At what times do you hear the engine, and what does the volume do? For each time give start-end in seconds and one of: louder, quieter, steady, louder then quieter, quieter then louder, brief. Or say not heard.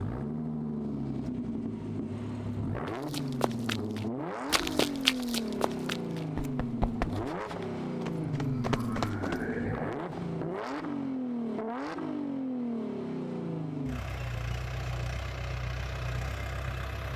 0.0-17.1 steady.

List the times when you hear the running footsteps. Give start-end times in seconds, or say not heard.
2.9-9.6.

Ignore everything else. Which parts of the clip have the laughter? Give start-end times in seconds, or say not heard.
8.2-10.0.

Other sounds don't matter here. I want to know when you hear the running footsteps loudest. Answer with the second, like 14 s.
5 s.